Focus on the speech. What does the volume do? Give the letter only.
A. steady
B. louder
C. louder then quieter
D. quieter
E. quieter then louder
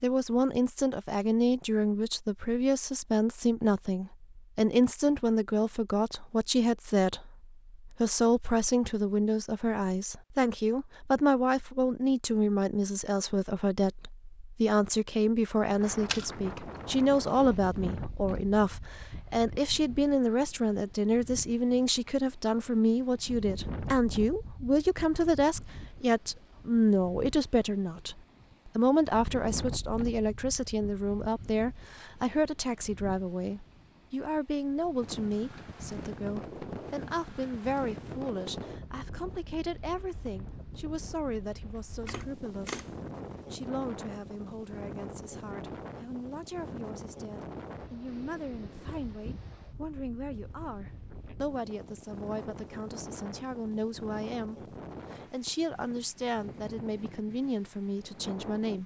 D.